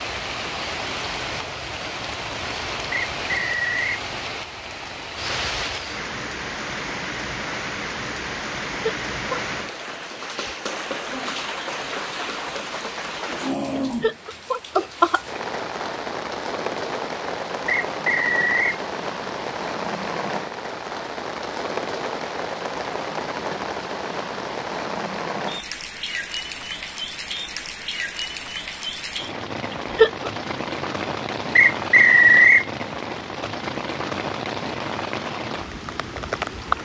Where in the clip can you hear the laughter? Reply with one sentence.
You can hear the laughter from 8.8 to 9.4 s, from 14.0 to 15.4 s and from 29.7 to 30.3 s.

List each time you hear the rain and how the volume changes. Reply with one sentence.
The rain can be heard from 0.0 to 36.8 s, at a steady volume.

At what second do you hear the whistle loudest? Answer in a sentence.
The volume of the whistle peaks at 32 seconds.